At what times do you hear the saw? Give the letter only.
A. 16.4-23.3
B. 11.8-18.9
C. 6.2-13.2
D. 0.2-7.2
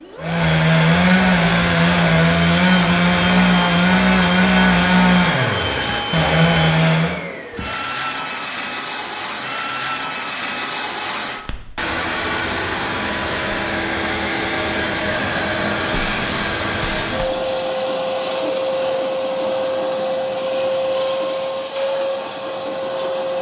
D.